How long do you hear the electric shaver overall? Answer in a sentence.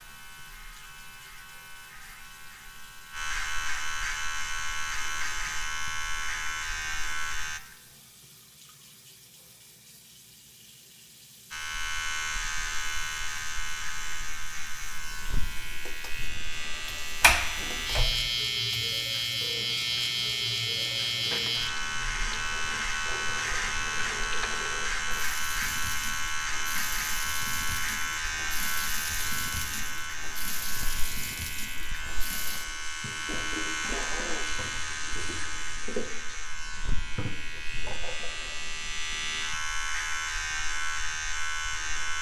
The electric shaver can be heard for 38 seconds in total.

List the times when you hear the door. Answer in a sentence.
The door can be heard from 17.2 to 18.1 s.